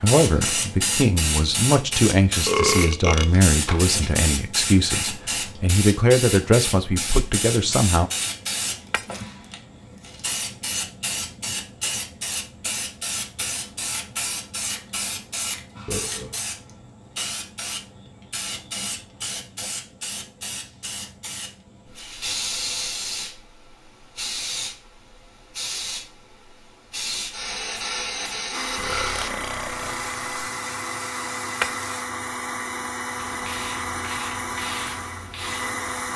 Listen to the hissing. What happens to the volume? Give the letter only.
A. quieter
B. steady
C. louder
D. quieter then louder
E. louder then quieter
A.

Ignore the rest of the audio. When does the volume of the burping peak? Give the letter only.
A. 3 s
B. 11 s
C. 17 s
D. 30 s
A.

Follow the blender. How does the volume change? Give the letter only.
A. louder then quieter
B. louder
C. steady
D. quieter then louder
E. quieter
C.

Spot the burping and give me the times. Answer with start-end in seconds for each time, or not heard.
2.5-3.9, 15.8-16.4, 28.8-30.2.